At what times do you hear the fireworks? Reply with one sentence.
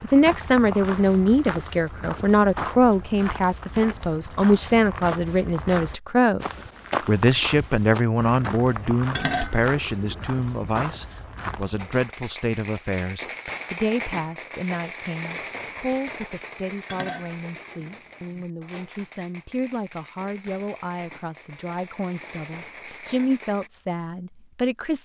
You can hear the fireworks from 11.8 to 23.7 s.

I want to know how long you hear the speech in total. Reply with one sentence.
You can hear the speech for 25 seconds altogether.